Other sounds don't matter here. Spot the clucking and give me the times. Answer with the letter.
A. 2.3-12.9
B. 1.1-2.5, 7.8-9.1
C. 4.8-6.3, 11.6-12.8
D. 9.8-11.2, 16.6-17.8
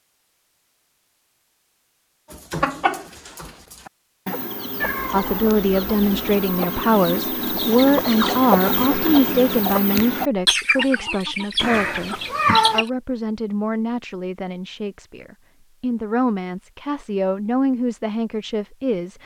A.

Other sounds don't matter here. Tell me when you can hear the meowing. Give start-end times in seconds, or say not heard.
4.8-6.3, 11.6-12.8.